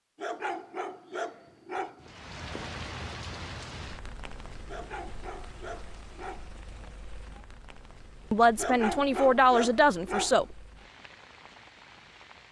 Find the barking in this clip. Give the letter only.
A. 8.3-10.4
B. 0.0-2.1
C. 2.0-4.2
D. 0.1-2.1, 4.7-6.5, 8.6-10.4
D.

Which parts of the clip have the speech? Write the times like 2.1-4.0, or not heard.
8.3-10.4.